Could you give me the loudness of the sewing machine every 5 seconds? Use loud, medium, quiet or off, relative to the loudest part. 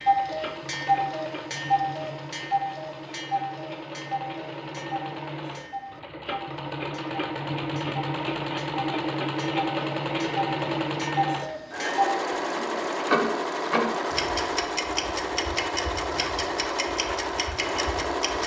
medium, loud, loud, loud.